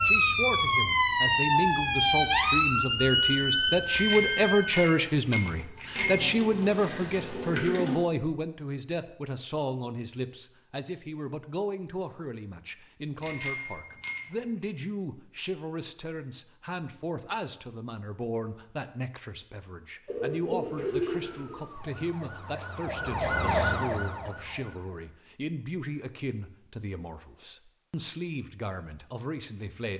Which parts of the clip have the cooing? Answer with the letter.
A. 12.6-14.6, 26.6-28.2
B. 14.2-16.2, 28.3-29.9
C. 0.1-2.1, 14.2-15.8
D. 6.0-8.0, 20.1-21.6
D.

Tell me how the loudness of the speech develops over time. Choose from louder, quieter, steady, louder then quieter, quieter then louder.
quieter.